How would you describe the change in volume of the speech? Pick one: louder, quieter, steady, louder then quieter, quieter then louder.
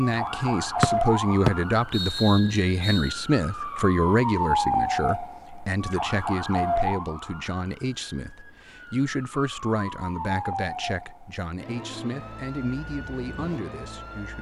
quieter.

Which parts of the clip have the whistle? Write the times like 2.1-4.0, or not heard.
0.8-3.1.